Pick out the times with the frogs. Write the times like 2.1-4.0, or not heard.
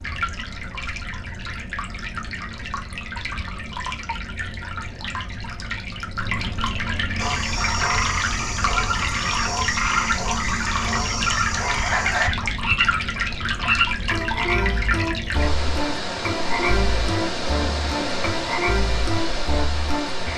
7.2-20.3.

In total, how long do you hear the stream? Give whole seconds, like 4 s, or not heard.
20 s.